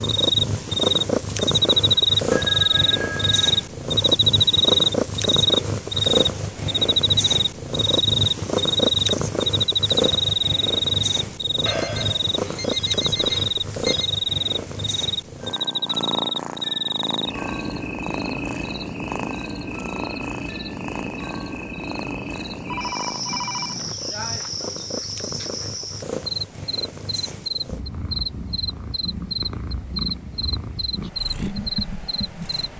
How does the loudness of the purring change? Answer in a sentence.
The volume of the purring goes down.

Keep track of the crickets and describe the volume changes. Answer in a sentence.
The volume of the crickets goes down.